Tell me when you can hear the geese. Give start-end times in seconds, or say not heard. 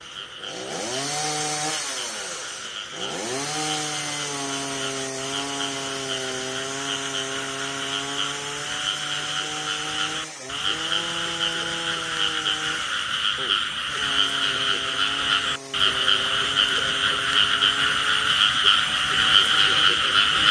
not heard.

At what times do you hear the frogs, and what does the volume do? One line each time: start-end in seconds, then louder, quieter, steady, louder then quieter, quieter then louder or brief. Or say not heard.
0.0-20.4 louder.